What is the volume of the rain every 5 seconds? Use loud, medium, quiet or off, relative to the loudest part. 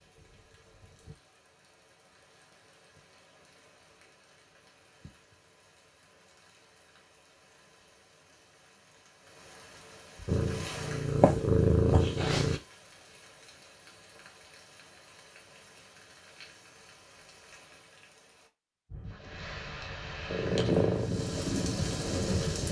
quiet, quiet, quiet, quiet, loud.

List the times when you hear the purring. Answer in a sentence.
You can hear the purring from 10.2 to 12.6 s and from 20.2 to 22.6 s.